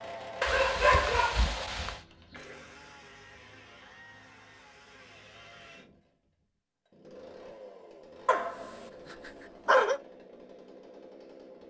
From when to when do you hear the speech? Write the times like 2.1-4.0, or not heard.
not heard.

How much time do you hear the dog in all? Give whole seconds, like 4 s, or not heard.
3 s.